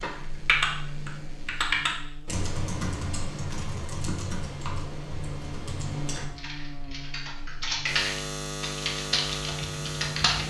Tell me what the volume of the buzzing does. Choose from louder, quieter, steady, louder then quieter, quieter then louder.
louder.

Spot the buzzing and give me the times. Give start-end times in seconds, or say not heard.
0.2-10.4.